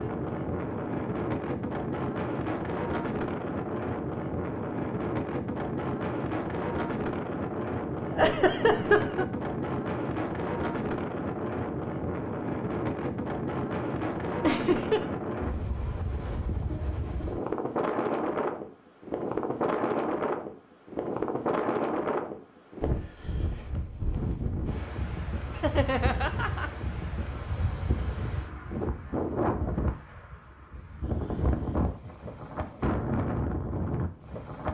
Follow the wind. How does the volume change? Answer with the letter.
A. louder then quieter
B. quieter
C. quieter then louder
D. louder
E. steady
E.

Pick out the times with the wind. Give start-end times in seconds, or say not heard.
0.0-34.6.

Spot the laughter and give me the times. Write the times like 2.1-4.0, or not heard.
8.1-9.2, 14.4-15.1, 25.6-26.7.